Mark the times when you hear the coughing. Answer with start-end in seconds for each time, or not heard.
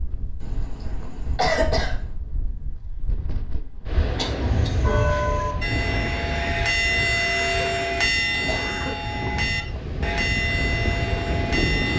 0.4-1.9, 4.2-5.0, 8.3-9.2.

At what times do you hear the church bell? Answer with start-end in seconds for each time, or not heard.
4.4-11.9.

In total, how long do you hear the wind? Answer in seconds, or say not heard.
12 s.